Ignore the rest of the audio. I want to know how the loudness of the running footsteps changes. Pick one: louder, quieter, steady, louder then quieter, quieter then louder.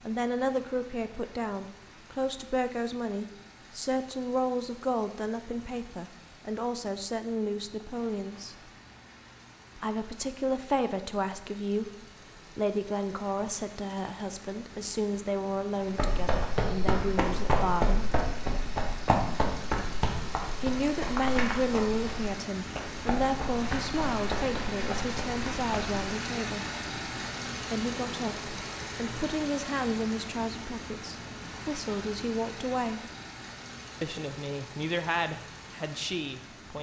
quieter.